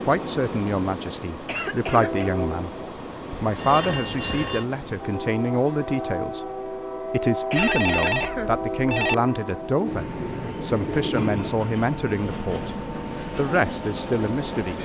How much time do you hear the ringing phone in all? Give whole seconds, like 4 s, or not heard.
3 s.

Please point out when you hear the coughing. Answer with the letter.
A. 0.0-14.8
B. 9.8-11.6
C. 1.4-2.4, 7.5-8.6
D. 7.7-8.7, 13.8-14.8
C.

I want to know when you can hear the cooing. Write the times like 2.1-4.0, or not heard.
9.8-11.6.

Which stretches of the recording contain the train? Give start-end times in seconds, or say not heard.
0.0-14.8.